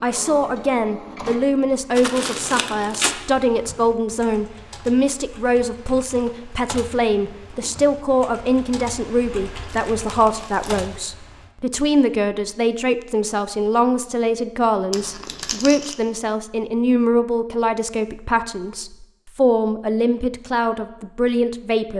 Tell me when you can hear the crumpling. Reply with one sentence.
You can hear the crumpling from 1.9 to 3.1 s, from 9.7 to 10.8 s and from 14.9 to 15.9 s.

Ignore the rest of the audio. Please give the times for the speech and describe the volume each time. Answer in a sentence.
You can hear the speech from 0.0 to 21.9 s, at a steady volume.